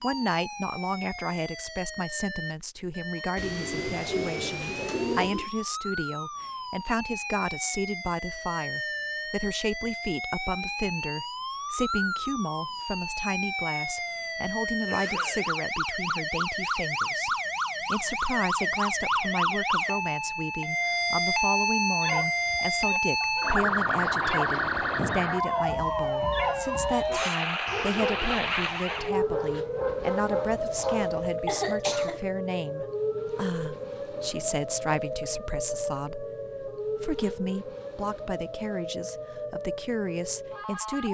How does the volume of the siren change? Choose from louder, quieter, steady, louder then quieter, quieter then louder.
louder then quieter.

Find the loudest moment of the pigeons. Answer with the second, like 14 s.
5 s.